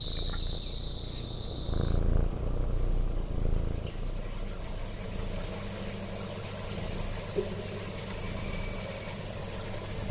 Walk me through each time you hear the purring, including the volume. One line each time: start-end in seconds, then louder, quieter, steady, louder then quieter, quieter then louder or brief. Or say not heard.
0.0-10.0 quieter.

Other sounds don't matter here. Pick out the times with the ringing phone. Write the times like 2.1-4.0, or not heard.
7.3-7.8.